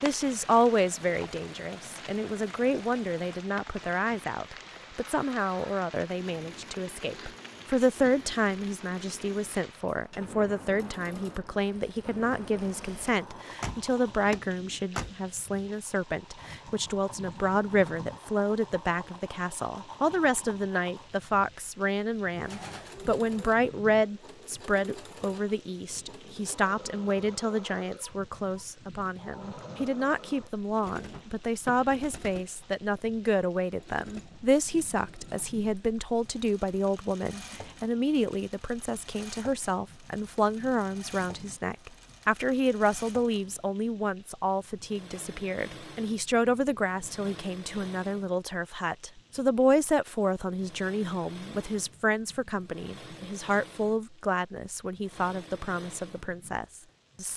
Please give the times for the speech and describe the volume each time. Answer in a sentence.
The speech can be heard from 0.0 to 57.3 s, at a steady volume.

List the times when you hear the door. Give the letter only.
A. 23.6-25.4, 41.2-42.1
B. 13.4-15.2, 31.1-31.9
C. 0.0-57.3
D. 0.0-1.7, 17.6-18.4
B.